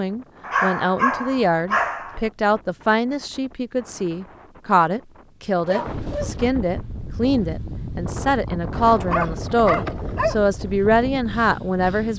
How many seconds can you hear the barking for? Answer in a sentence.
The barking can be heard for 4 seconds in total.